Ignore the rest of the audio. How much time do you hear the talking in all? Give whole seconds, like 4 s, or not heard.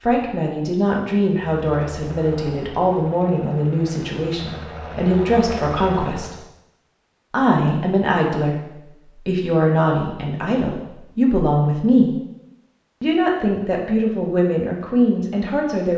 14 s.